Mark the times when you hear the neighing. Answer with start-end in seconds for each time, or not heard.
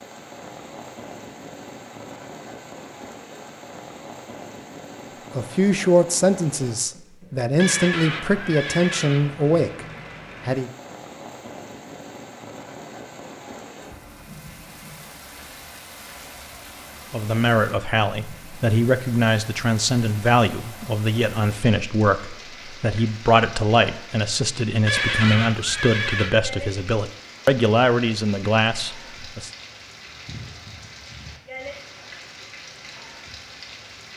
7.5-9.2, 24.9-26.3.